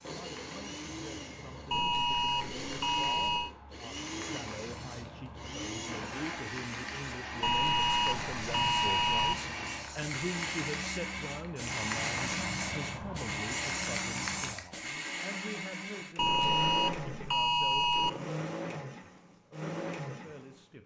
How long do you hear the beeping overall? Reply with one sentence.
The beeping can be heard for 6 seconds in total.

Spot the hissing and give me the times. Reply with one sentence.
You can hear the hissing from 0.0 to 14.7 s.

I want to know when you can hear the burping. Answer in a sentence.
The burping can't be heard in this clip.